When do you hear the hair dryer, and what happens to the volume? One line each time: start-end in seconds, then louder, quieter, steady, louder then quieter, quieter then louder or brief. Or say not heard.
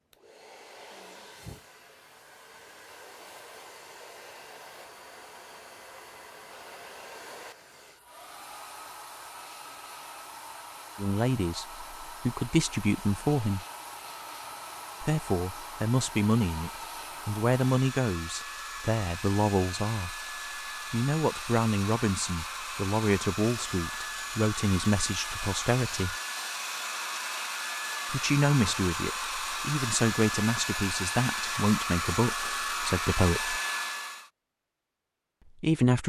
0.0-34.3 louder.